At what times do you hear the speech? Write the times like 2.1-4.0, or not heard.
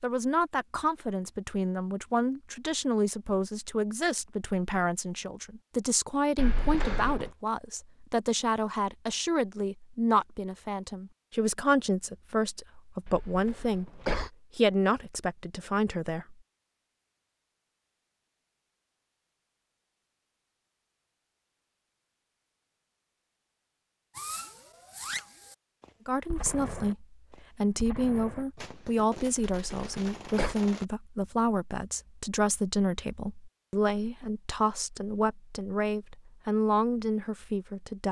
0.0-16.4, 26.1-38.0.